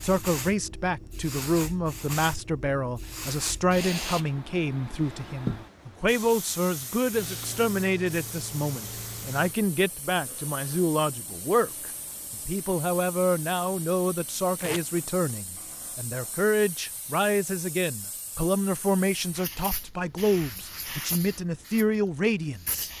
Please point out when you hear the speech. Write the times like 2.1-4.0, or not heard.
0.0-22.9.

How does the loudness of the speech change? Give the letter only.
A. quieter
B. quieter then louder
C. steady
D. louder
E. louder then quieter
C.